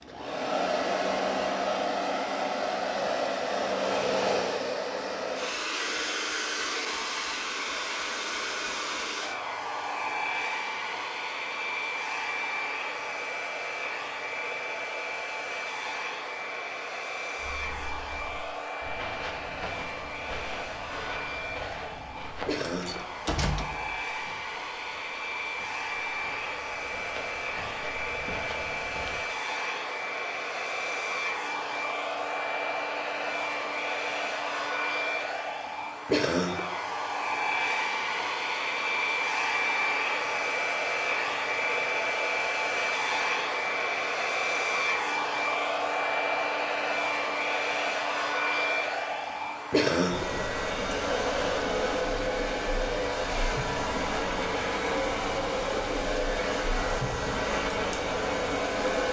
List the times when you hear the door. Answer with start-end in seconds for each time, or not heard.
22.6-24.0.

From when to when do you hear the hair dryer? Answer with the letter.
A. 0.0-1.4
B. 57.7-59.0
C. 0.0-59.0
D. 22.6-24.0
C.